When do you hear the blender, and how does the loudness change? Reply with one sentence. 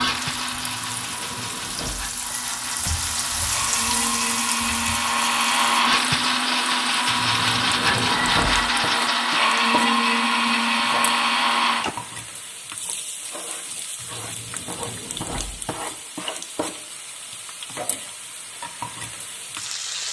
You can hear the blender from 0.0 to 11.9 s, getting louder.